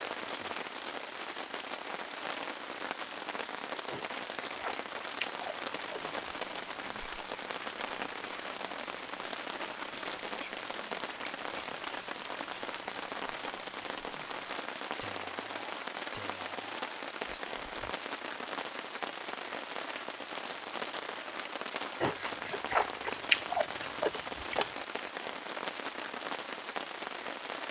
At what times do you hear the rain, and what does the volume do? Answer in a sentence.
You can hear the rain from 0.0 to 27.6 s, at a steady volume.